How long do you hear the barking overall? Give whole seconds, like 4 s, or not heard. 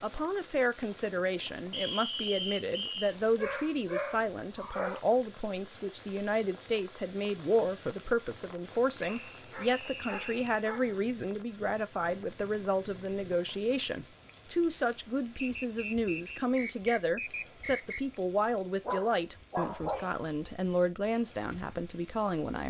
5 s.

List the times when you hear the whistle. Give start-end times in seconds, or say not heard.
1.7-3.1, 9.0-10.4, 15.4-18.0.